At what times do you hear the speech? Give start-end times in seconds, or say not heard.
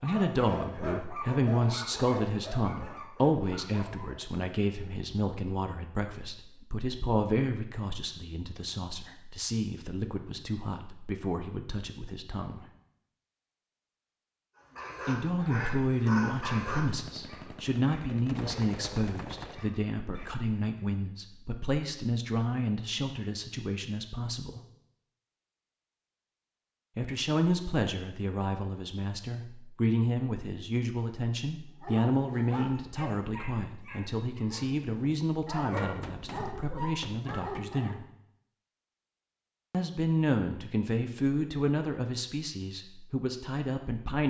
0.0-12.7, 15.1-24.6, 26.9-38.0, 39.7-44.2.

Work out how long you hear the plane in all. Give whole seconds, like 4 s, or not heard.
not heard.